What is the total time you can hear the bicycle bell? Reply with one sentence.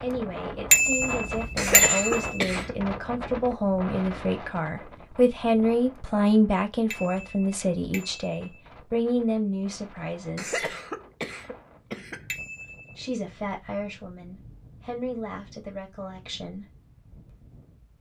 The bicycle bell can be heard for 4 seconds in total.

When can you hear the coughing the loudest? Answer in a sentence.
The loudest moment of the coughing is at 2 seconds.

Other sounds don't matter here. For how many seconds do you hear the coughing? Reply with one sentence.
The coughing can be heard for 3 seconds in total.